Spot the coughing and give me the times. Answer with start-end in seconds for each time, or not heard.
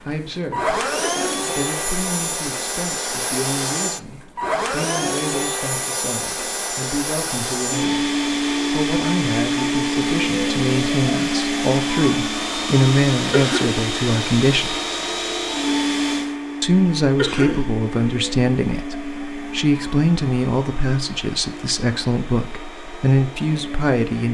1.1-1.6, 13.3-13.8, 17.1-17.7.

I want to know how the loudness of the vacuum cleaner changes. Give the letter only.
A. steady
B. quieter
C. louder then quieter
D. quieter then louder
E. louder
B.